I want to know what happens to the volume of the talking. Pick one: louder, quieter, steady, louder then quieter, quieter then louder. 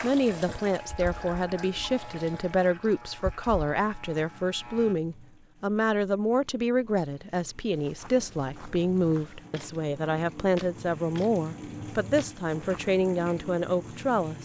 steady.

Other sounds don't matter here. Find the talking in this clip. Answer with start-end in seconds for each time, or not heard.
0.0-14.4.